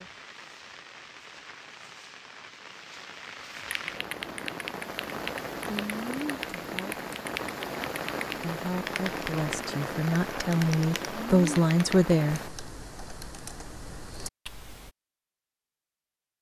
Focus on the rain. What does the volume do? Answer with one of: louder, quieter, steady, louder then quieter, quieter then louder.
louder.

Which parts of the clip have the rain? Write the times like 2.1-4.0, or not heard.
0.0-12.5.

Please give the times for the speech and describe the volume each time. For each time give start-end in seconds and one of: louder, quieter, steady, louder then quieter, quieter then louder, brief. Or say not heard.
6.6-7.0 brief
8.3-12.4 louder.